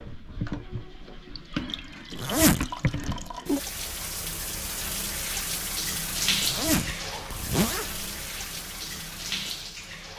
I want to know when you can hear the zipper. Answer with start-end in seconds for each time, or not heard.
2.1-3.1, 6.4-8.1.